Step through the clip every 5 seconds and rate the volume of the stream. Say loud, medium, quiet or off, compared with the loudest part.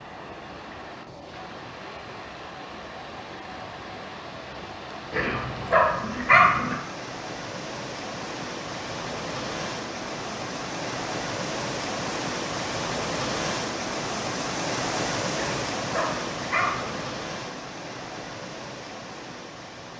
medium, medium, loud, loud.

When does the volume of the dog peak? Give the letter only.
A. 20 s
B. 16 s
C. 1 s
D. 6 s
D.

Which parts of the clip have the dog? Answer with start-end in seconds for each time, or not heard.
5.1-6.8, 15.3-17.0.